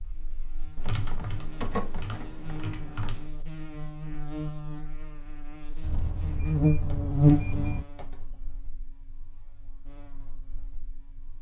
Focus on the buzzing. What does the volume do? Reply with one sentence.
The loudness of the buzzing goes up, then down.